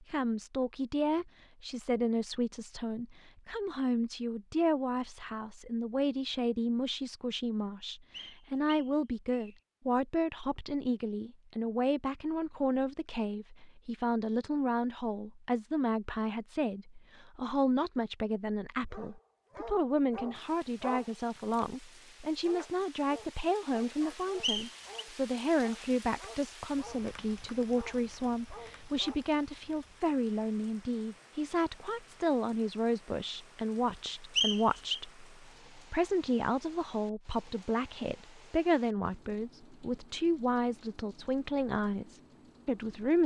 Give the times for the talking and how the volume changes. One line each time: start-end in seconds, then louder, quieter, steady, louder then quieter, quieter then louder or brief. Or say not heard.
0.0-43.2 steady.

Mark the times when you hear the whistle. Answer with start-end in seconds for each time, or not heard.
8.1-9.6, 24.4-24.9, 34.4-35.0.